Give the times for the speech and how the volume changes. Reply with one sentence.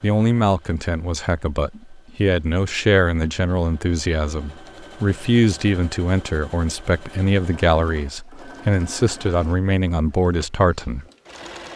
The speech can be heard from 0.0 to 11.1 s, at a steady volume.